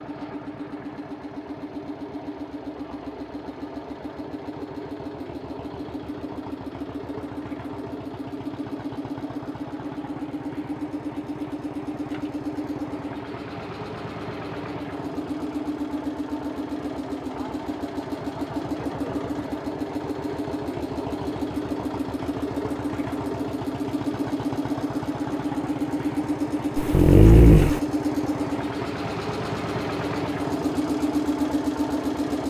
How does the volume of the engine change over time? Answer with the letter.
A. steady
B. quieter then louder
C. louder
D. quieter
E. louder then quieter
C.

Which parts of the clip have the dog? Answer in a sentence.
The dog can be heard from 26.8 to 27.8 s.